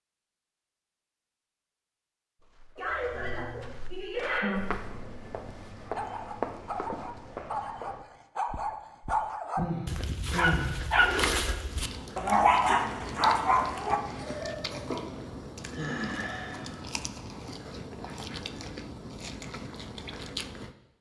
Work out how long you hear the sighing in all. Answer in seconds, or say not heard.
5 s.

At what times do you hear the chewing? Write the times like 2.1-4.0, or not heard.
11.7-20.8.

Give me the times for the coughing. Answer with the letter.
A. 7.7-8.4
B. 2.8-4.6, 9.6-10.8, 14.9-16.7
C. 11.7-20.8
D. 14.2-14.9
D.